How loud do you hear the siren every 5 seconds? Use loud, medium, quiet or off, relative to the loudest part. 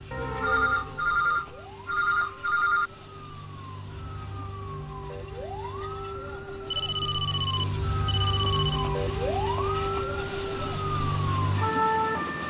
quiet, loud, loud.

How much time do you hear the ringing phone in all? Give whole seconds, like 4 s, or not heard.
5 s.